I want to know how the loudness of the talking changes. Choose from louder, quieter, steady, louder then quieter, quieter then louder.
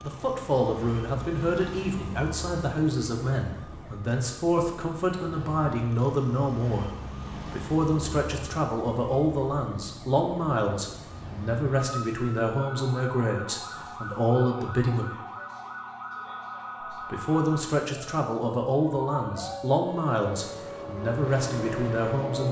steady.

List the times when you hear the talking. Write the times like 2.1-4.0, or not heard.
0.0-15.1, 17.0-22.4.